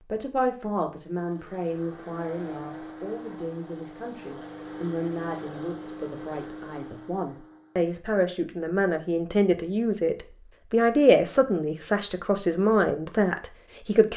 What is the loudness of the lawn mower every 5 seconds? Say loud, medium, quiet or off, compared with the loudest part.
loud, loud, off.